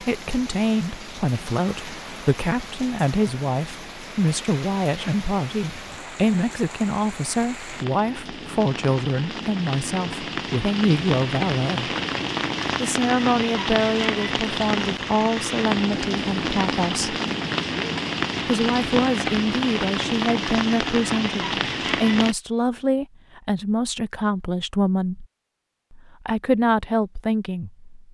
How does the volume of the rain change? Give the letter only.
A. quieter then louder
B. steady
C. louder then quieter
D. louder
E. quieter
D.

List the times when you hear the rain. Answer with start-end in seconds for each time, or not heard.
0.0-22.4.